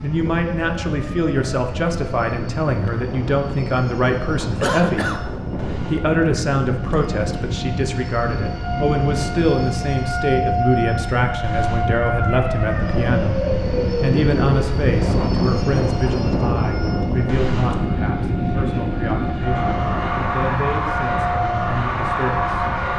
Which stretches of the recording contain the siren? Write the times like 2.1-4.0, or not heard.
0.0-22.9.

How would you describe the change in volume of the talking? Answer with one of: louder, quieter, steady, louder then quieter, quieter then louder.
quieter.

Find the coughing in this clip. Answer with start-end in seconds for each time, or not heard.
4.6-5.2.